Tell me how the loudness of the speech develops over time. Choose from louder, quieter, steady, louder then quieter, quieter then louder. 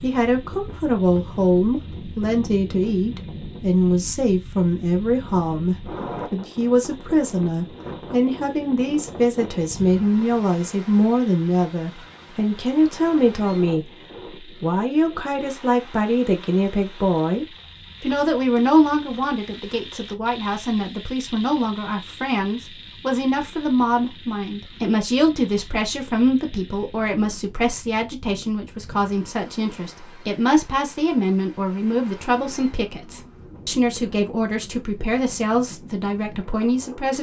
steady.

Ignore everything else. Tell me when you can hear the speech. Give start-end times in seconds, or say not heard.
0.0-37.1.